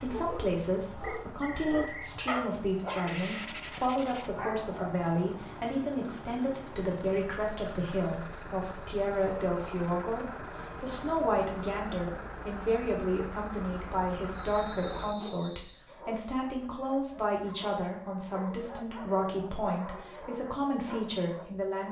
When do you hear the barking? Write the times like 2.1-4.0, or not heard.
0.0-5.0, 15.1-21.8.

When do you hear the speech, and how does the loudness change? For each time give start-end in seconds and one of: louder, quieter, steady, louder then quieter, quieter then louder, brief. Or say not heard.
0.0-21.8 steady.